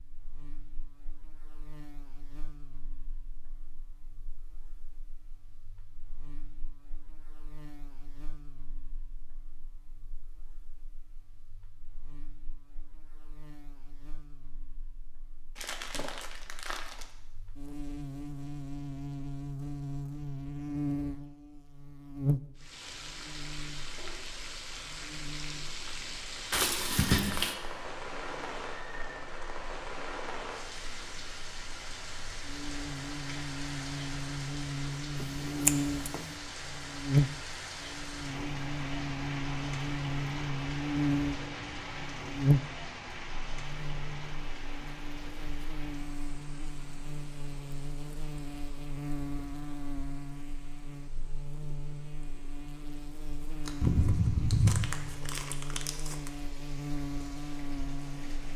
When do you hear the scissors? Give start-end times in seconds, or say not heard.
35.1-36.4.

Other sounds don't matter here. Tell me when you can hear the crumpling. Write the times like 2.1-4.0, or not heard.
15.6-17.1, 26.5-27.6, 53.6-56.3.